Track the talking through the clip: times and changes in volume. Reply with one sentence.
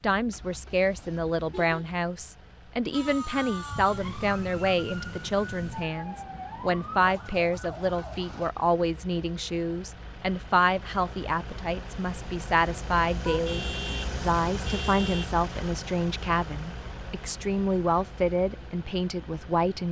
The talking can be heard from 0.0 to 19.8 s, at a steady volume.